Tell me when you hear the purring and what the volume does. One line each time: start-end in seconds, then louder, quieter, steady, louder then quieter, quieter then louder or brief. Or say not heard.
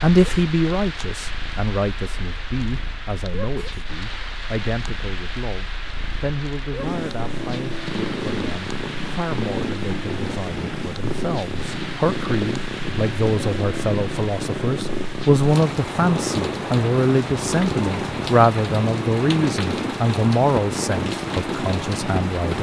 0.0-22.5 louder.